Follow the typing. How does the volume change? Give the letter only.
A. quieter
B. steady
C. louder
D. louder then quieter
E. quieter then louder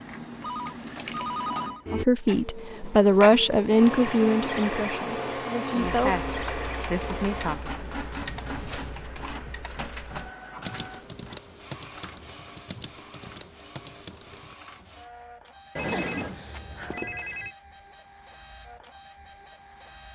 B.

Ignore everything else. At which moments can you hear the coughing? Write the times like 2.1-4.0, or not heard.
5.5-7.7.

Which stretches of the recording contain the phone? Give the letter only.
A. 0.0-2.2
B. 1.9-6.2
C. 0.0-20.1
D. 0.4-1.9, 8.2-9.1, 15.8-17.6
D.